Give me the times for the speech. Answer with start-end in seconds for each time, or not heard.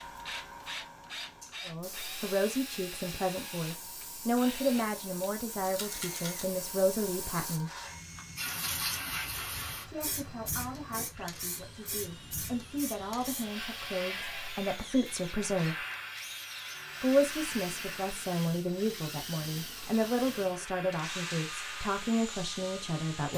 1.6-7.7, 9.8-15.8, 17.0-23.3.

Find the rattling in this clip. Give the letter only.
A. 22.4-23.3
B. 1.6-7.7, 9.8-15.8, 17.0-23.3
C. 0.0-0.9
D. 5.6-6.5
D.